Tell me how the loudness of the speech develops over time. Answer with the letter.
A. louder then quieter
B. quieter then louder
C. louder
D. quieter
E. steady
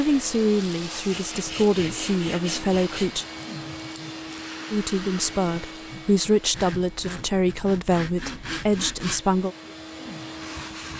E.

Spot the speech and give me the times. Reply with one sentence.
The speech can be heard from 0.0 to 3.2 s and from 4.7 to 9.6 s.